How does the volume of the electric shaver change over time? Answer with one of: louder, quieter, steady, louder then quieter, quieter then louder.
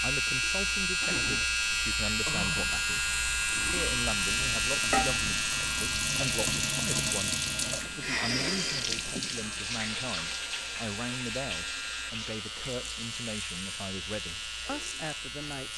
quieter.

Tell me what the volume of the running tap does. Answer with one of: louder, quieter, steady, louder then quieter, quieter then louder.
louder then quieter.